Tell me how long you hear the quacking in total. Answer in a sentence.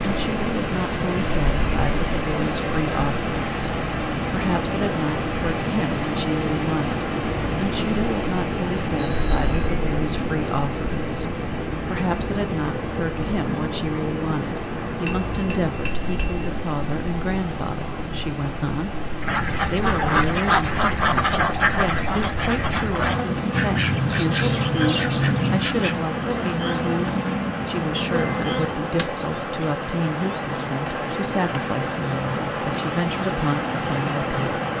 You can hear the quacking for 7 seconds altogether.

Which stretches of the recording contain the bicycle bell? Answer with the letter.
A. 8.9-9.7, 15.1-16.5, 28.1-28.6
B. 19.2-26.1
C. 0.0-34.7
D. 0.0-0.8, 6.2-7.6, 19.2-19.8
A.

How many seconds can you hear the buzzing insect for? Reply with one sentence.
The buzzing insect can be heard for 35 seconds in total.